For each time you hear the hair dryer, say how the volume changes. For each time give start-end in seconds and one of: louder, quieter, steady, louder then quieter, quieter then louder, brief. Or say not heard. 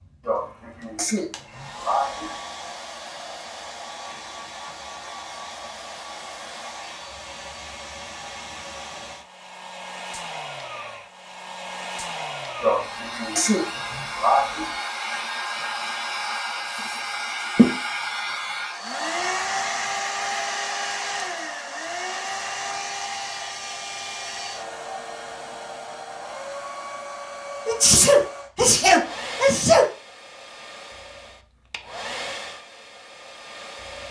0.0-34.0 louder then quieter.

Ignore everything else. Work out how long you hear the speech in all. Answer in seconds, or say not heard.
not heard.